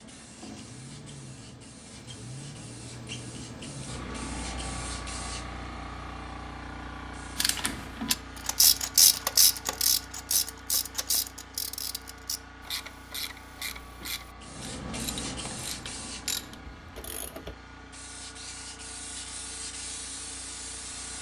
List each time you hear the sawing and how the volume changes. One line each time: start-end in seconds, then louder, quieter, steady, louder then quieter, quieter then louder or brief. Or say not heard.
not heard.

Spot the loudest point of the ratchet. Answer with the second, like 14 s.
9 s.